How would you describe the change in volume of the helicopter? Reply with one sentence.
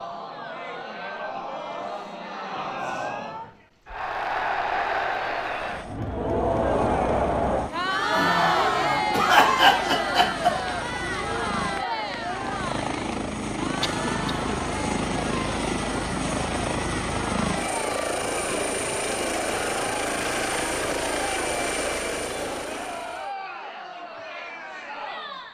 The volume of the helicopter goes up.